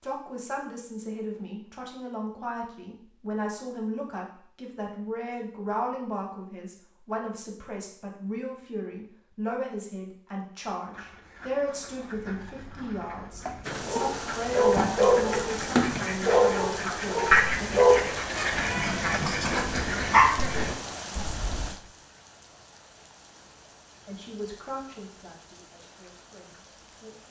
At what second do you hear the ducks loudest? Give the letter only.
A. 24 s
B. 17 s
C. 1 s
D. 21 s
B.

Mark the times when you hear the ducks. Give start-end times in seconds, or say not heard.
10.9-21.8.